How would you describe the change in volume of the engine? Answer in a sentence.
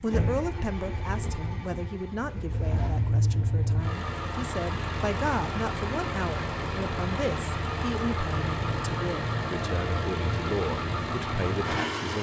The volume of the engine goes up.